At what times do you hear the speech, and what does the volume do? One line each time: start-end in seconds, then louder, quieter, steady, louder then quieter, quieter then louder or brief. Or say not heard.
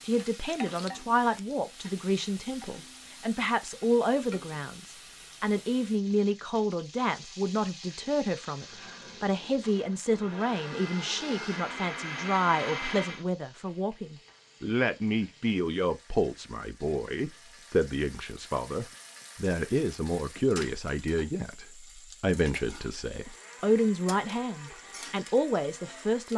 0.0-26.3 steady.